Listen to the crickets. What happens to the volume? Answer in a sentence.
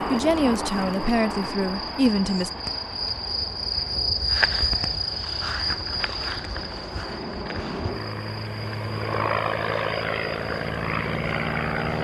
The volume of the crickets goes up, then down.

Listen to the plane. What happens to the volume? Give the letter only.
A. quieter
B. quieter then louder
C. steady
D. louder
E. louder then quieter
B.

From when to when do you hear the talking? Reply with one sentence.
You can hear the talking from 0.1 to 2.5 s.